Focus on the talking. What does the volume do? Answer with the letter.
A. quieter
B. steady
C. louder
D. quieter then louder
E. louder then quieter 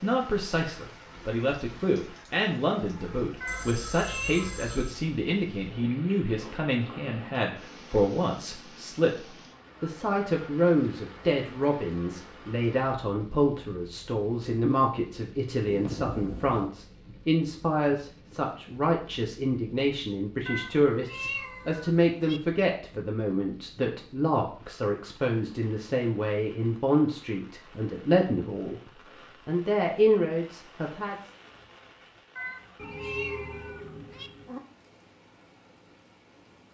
B.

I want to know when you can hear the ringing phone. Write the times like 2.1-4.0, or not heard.
3.5-5.0, 15.7-16.7, 32.8-34.6.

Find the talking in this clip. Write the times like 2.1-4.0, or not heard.
0.0-31.1.